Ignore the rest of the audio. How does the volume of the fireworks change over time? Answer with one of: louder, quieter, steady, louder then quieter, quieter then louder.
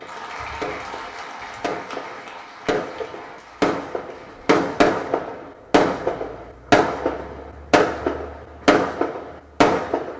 louder.